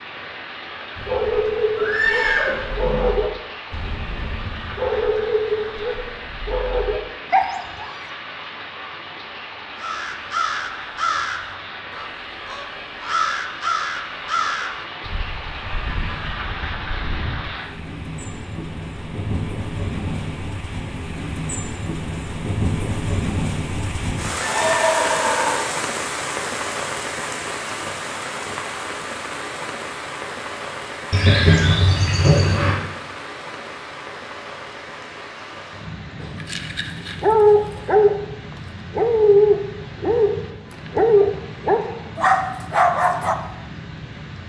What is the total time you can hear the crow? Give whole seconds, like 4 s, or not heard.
8 s.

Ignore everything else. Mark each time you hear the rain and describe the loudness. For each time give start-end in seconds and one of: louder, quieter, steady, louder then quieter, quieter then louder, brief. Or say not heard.
0.0-44.4 louder then quieter.